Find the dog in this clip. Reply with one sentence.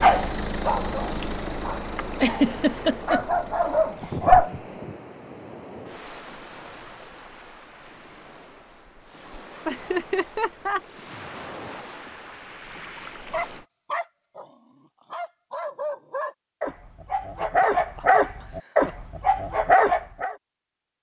The dog can be heard from 0.0 to 4.5 s and from 13.3 to 20.4 s.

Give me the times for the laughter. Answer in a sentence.
You can hear the laughter from 2.1 to 3.2 s, from 9.7 to 10.8 s and from 17.4 to 18.9 s.